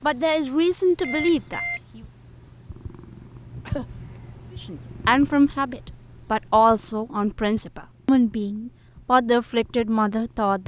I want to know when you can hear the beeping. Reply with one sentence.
The beeping can be heard from 0.9 to 1.8 s.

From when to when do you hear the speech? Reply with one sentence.
The speech can be heard from 0.0 to 2.0 s and from 4.6 to 10.6 s.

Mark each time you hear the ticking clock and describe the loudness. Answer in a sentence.
You can't hear the ticking clock here.